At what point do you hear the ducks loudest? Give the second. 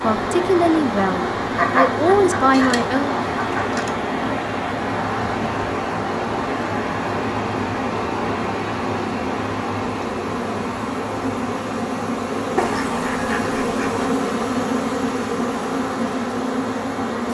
2 s.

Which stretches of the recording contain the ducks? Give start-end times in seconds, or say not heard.
1.6-3.9, 12.6-14.1.